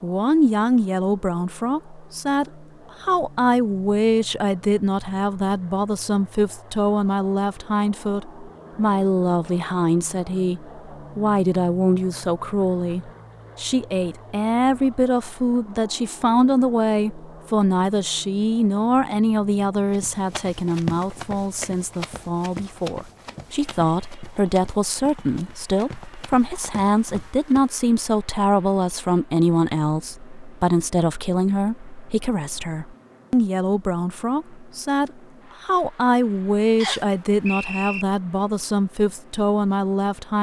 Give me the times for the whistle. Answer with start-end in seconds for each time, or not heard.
36.8-38.0.